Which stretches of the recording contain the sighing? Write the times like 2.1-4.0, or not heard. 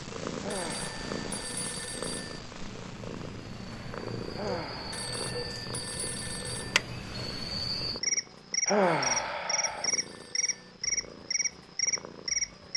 0.4-1.3, 4.3-5.6, 8.7-9.9.